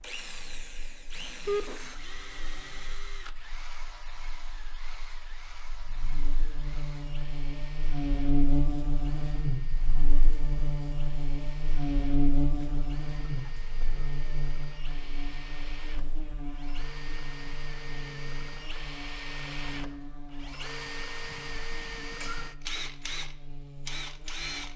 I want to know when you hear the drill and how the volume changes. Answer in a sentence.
You can hear the drill from 0.0 to 24.7 s, getting quieter then louder.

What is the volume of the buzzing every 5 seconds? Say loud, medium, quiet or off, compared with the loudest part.
quiet, loud, loud, medium, quiet.